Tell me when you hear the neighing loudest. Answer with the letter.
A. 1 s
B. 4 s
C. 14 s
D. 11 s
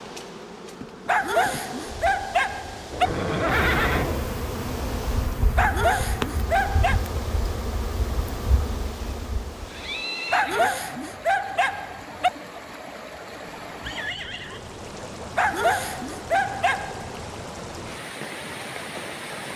B.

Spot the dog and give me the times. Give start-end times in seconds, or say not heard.
1.1-3.1, 5.5-7.0, 10.3-12.3, 15.3-17.1.